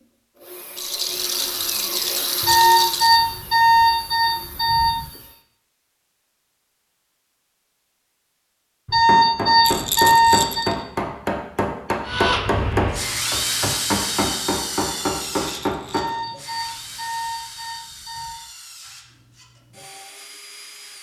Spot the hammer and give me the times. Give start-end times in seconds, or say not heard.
9.1-16.1.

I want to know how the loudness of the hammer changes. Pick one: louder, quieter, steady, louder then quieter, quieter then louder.
steady.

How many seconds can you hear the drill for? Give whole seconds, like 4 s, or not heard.
14 s.